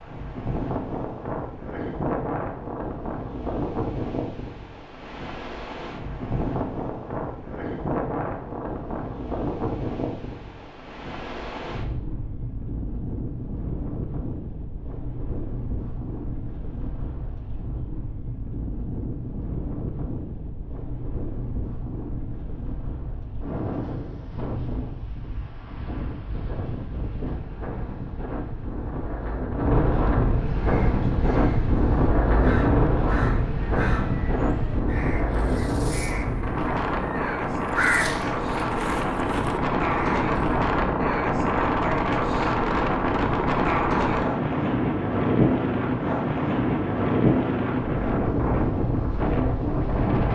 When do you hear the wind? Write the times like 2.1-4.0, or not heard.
0.0-50.3.